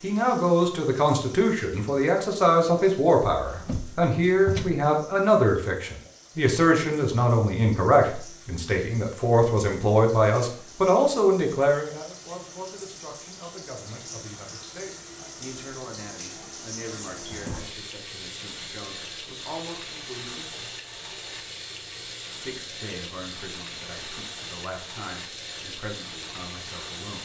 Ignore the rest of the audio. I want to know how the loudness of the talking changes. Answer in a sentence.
The loudness of the talking goes down.